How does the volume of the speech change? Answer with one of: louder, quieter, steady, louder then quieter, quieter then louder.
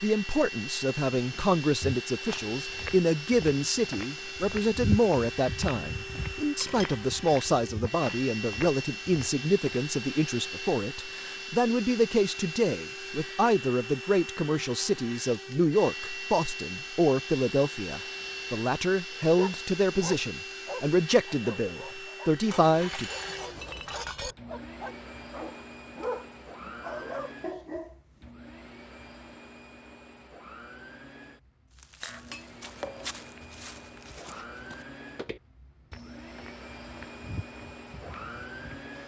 steady.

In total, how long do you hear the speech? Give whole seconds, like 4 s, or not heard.
23 s.